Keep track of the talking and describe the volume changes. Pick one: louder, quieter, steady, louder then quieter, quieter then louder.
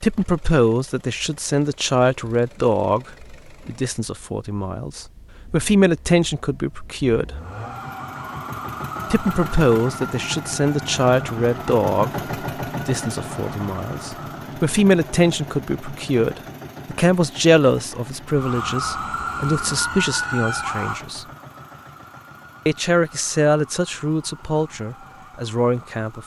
steady.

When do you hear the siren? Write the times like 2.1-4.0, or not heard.
7.3-14.6, 18.3-26.2.